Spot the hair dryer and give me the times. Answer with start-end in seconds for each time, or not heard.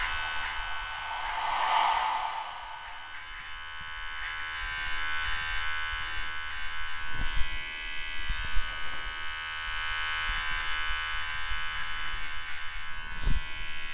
0.0-3.2.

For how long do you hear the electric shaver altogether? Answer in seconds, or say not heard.
14 s.